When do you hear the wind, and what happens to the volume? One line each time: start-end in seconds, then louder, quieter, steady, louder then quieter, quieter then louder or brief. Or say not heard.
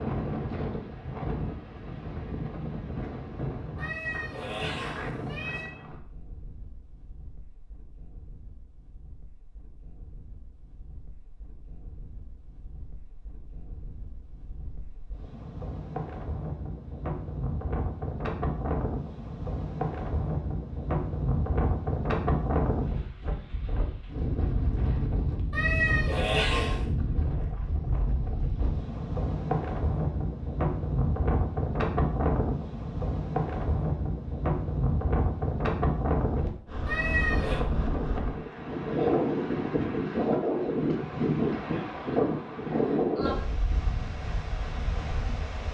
0.0-45.6 louder.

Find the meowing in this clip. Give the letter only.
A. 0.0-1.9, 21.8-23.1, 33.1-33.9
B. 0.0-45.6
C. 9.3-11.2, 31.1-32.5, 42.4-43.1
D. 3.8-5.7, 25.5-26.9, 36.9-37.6
D.